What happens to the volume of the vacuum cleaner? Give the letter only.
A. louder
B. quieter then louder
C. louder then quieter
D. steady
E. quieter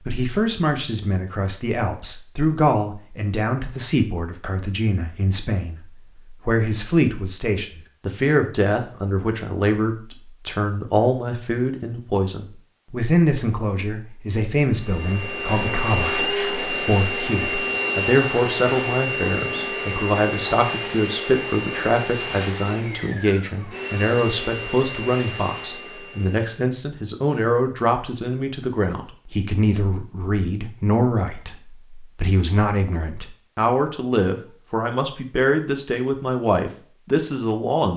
E.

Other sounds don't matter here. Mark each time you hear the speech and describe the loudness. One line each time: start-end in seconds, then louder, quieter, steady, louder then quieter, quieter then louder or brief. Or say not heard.
0.0-37.9 steady.